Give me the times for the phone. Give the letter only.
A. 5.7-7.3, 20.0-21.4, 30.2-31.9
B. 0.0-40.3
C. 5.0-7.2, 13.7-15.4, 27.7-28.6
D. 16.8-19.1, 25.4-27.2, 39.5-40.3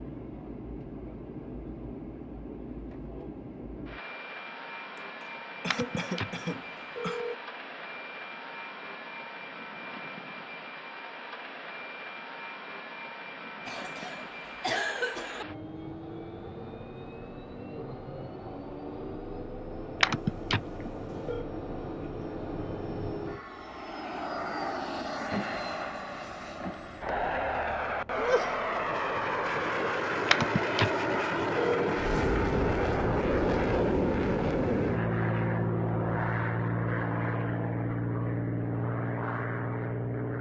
A.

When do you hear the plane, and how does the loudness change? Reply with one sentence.
You can hear the plane from 0.0 to 40.3 s, getting louder.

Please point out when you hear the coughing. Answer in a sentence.
You can hear the coughing from 5.0 to 7.2 s, from 13.7 to 15.4 s and from 27.7 to 28.6 s.